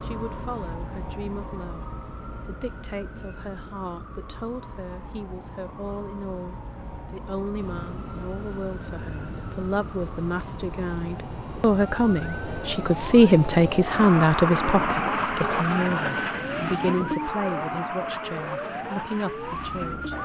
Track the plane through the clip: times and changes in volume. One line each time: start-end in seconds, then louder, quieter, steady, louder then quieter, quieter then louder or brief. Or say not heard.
7.5-20.1 louder then quieter.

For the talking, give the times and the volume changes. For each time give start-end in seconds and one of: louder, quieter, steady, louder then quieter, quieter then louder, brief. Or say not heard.
0.0-20.1 louder then quieter.